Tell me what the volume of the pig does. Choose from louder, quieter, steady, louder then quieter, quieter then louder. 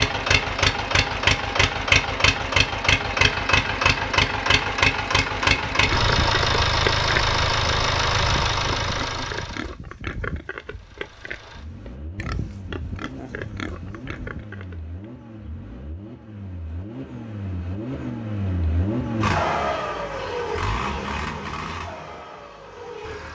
quieter.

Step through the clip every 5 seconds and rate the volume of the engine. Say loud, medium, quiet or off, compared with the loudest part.
loud, loud, quiet, medium, medium.